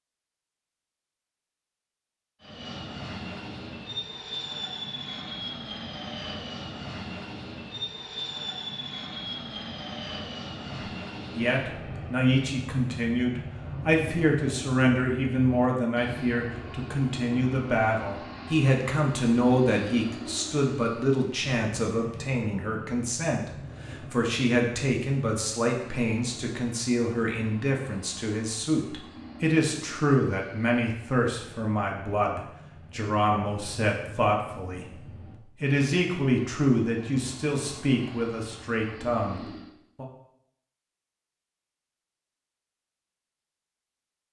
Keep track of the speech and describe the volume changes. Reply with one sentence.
The volume of the speech stays about the same.